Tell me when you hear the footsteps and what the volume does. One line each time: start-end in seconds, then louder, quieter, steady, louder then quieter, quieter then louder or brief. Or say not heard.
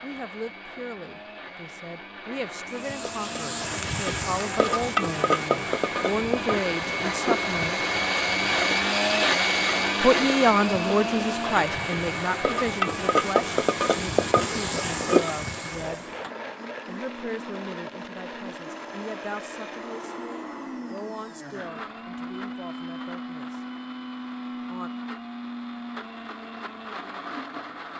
not heard.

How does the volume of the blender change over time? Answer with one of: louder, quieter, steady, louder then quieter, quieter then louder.
louder then quieter.